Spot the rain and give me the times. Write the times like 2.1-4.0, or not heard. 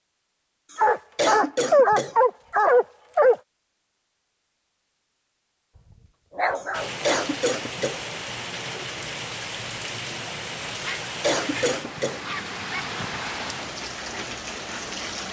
6.7-15.2.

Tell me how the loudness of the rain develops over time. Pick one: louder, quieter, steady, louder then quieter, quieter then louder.
steady.